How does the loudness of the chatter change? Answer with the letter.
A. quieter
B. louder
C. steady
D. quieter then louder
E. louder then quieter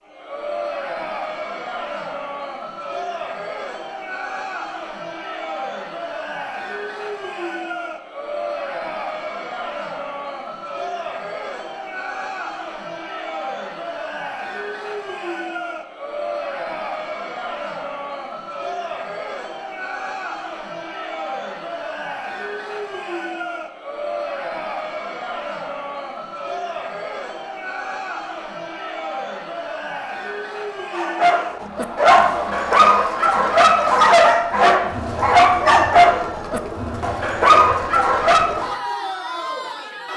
C.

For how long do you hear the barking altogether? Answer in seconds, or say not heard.
8 s.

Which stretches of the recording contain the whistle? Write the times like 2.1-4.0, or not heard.
not heard.